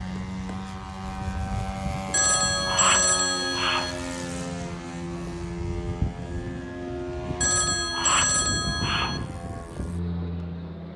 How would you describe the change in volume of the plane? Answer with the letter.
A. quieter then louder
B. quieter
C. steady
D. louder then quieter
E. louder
C.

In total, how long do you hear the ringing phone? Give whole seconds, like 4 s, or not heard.
4 s.